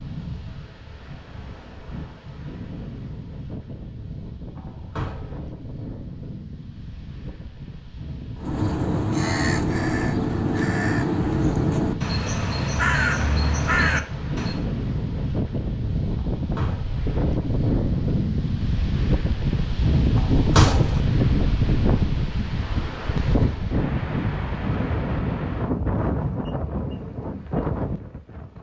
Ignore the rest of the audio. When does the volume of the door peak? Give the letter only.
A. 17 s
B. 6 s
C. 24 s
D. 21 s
D.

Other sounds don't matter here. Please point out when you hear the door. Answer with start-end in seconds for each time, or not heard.
4.5-5.4, 16.1-17.0, 20.1-21.0.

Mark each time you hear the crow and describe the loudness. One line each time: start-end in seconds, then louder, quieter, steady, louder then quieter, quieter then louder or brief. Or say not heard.
8.3-14.7 steady.